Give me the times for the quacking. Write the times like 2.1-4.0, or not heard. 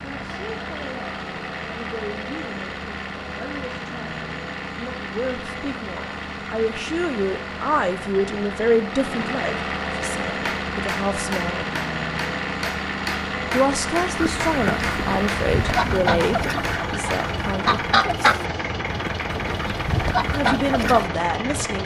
14.2-21.1.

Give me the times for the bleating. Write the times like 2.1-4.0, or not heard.
not heard.